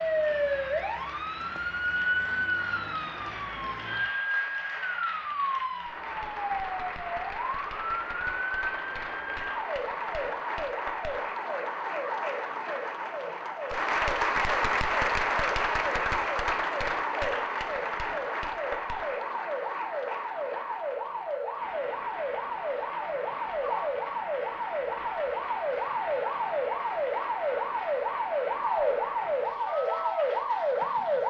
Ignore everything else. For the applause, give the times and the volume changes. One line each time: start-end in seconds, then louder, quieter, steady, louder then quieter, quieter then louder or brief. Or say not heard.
0.0-31.2 louder then quieter.